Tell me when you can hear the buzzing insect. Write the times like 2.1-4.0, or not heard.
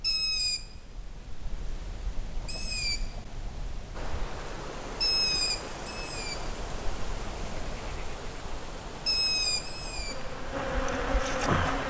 10.1-11.8.